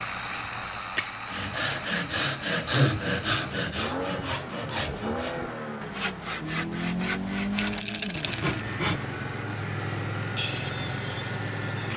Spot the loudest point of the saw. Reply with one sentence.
The loudest moment of the saw is at 3 seconds.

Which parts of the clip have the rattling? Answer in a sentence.
The rattling can be heard from 7.5 to 8.7 s.